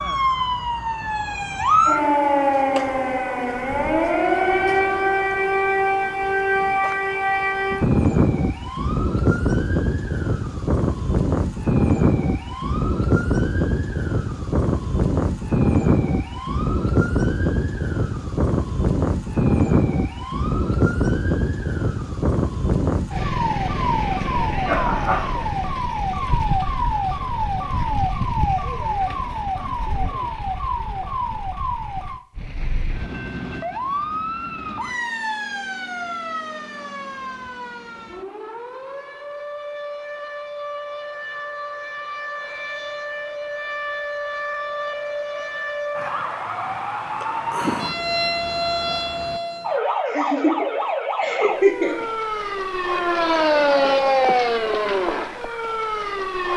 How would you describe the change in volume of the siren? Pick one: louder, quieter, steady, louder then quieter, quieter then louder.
quieter then louder.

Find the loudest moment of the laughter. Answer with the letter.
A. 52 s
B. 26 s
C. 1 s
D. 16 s
A.